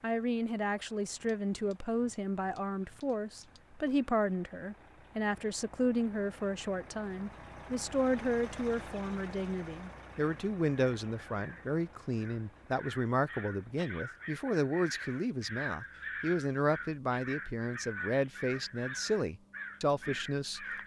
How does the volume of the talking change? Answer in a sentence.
The volume of the talking stays about the same.